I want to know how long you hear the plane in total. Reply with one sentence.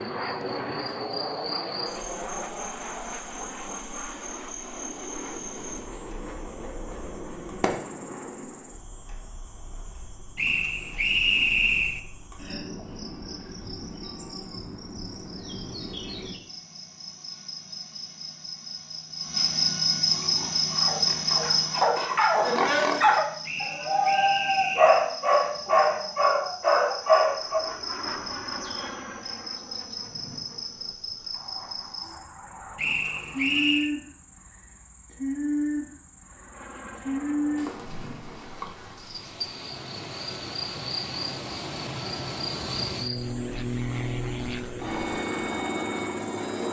You can hear the plane for 26 seconds altogether.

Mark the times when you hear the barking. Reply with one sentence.
You can hear the barking from 20.1 to 27.6 s.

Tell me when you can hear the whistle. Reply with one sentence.
You can hear the whistle from 10.3 to 12.0 s, from 23.4 to 25.1 s and from 32.8 to 33.9 s.